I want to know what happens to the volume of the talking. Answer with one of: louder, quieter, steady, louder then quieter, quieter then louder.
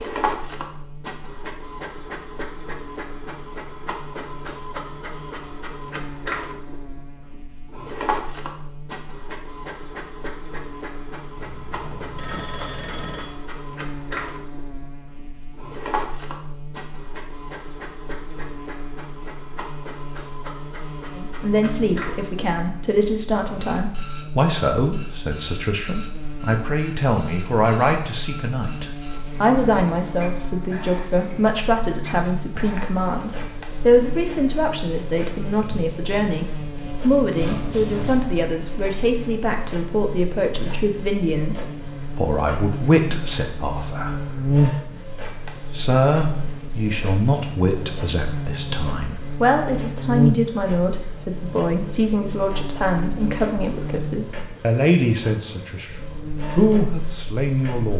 steady.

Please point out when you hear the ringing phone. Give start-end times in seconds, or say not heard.
11.3-13.3.